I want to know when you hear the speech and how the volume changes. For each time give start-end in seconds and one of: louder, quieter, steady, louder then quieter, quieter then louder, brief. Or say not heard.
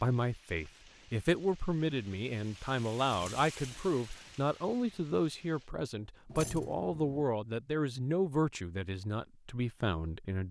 0.0-10.4 steady.